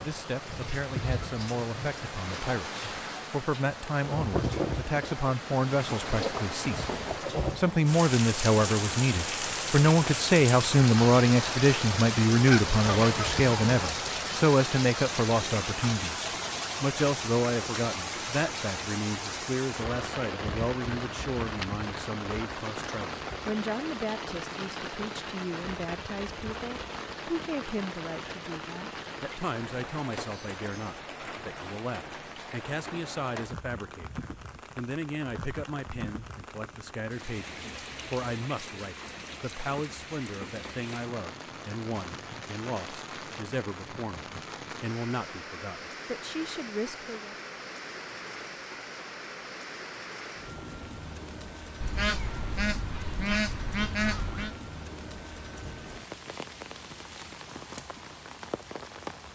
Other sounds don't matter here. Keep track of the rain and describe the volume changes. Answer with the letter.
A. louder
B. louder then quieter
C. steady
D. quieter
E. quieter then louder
D.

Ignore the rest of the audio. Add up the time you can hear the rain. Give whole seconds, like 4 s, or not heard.
59 s.